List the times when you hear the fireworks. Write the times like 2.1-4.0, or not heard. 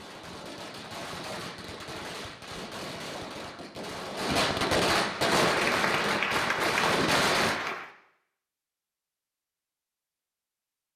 0.0-7.6.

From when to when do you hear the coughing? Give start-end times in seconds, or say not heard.
not heard.